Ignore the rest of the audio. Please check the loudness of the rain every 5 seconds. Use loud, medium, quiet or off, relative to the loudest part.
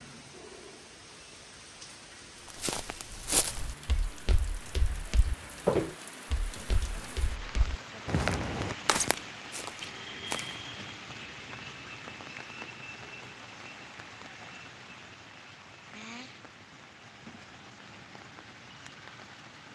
medium, loud, loud, medium.